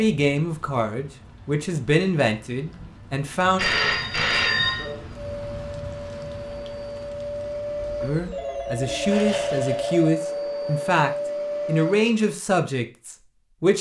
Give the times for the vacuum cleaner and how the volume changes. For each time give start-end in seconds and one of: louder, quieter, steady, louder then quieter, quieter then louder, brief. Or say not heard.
4.8-12.3 louder.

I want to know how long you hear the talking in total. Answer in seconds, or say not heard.
9 s.